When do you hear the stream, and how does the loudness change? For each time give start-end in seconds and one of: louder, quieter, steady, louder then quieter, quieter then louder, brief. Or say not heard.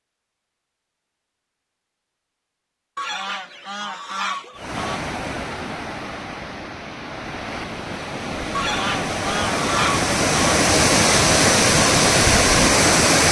4.5-13.2 louder.